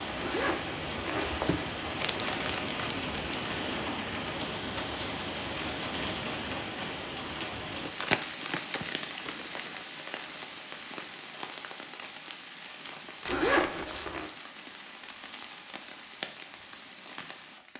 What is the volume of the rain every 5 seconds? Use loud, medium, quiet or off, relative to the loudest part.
loud, loud, medium, medium.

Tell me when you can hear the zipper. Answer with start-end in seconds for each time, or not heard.
0.2-1.6, 13.2-14.3.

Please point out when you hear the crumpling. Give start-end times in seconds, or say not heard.
2.0-3.7, 7.8-9.8, 13.2-14.1.